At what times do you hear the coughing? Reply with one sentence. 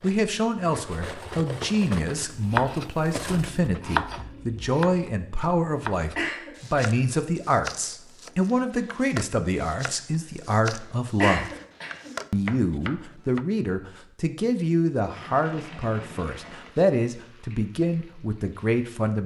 The coughing can be heard from 6.2 to 6.8 s and from 11.2 to 12.2 s.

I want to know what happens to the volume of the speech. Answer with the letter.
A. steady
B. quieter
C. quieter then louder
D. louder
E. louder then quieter
A.